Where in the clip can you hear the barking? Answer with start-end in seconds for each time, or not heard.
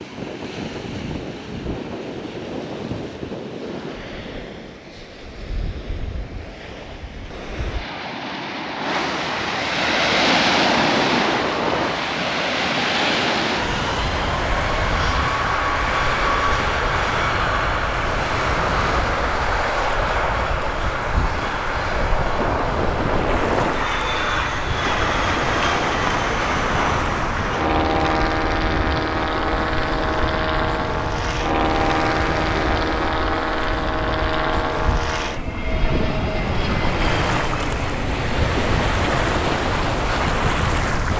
not heard.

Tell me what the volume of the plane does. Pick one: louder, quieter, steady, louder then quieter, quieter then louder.
steady.